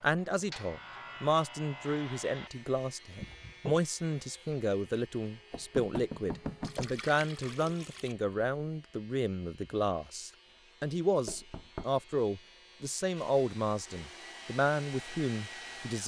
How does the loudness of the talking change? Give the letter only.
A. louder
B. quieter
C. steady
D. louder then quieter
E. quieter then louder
C.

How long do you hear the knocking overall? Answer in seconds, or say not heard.
3 s.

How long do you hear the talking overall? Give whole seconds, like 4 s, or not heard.
16 s.